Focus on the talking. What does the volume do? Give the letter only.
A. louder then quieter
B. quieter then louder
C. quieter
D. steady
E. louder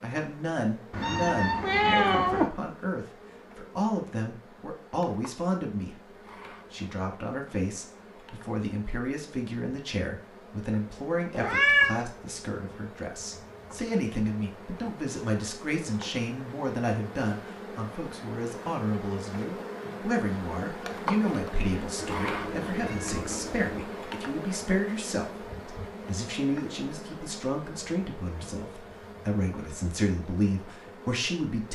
D.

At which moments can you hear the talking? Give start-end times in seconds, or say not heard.
0.0-6.1, 6.7-31.7.